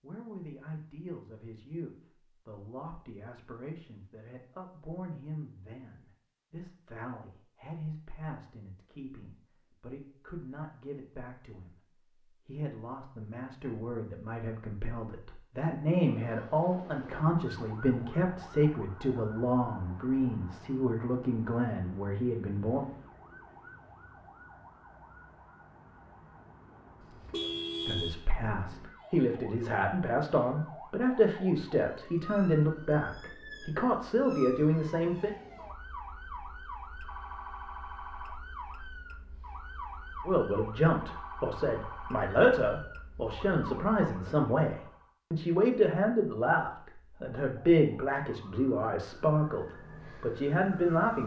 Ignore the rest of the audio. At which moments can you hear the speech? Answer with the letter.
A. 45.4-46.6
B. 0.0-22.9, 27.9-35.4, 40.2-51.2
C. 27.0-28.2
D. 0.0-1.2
B.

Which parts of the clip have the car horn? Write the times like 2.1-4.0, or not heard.
27.0-28.2.